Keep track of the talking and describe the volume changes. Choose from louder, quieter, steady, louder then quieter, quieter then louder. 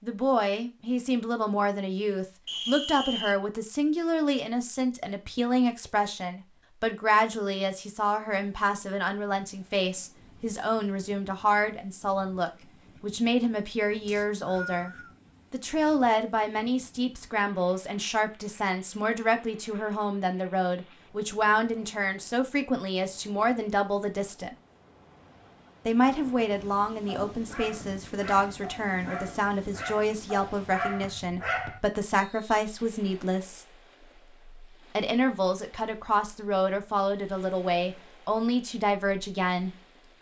steady.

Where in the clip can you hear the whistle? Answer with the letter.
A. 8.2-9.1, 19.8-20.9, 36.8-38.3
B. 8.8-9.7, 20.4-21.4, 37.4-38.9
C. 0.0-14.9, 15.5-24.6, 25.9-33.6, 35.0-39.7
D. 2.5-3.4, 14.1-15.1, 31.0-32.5
D.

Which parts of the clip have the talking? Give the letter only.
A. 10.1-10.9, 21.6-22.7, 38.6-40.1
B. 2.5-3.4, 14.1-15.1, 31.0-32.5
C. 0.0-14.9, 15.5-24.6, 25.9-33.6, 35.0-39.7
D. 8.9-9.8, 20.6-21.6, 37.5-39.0
C.